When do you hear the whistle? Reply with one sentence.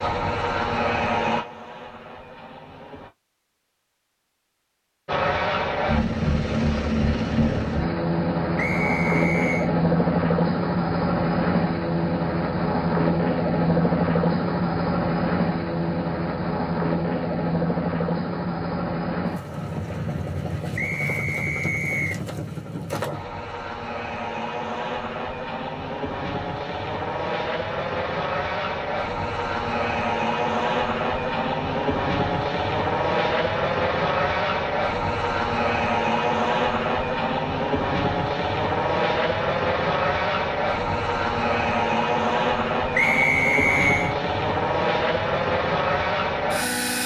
The whistle can be heard from 8.6 to 9.7 s, from 20.8 to 22.2 s and from 43.0 to 44.1 s.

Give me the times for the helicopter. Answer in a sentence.
You can hear the helicopter from 0.0 to 3.1 s and from 5.0 to 47.0 s.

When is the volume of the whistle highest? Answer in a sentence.
The volume of the whistle peaks at 43 seconds.